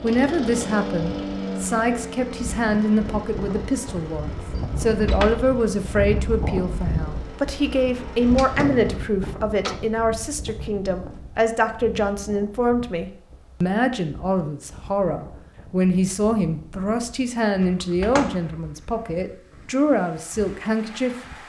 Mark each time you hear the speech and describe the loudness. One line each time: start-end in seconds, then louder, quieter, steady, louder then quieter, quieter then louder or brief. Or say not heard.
0.0-21.1 steady.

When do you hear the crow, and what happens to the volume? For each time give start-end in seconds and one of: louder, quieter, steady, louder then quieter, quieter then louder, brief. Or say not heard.
not heard.